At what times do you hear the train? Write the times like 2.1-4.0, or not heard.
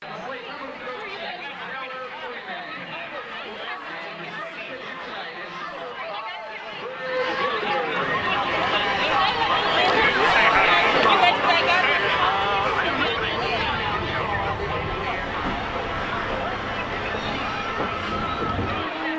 8.0-19.1.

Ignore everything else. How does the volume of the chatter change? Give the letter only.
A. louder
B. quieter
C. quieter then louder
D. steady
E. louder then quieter
E.